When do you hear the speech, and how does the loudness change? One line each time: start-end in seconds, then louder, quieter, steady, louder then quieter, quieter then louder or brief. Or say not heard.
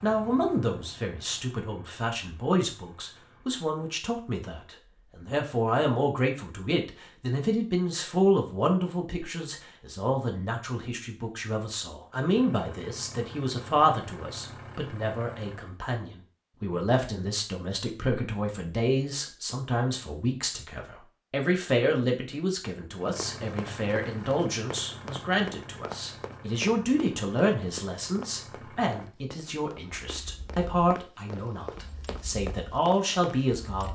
0.0-33.9 steady.